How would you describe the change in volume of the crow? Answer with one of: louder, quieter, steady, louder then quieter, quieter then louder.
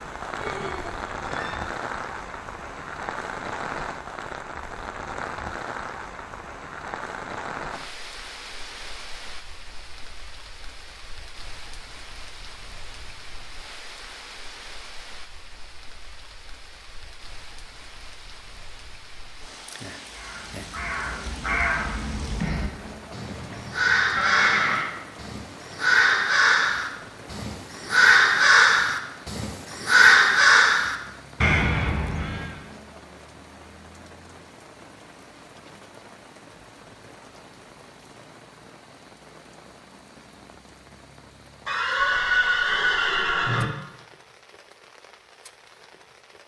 louder.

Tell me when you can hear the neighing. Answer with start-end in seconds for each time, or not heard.
0.3-1.6, 23.1-24.9, 41.6-43.6.